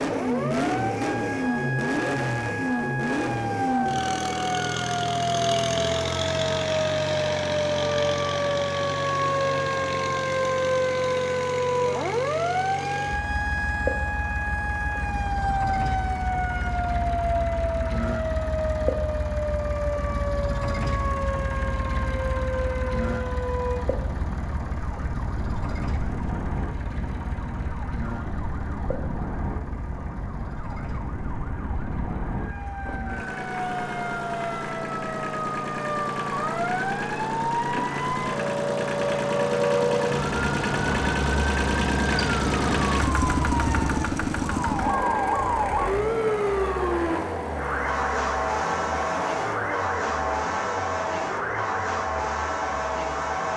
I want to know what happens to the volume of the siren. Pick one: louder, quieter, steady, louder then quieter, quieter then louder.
quieter then louder.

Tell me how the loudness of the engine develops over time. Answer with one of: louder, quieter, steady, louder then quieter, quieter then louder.
quieter then louder.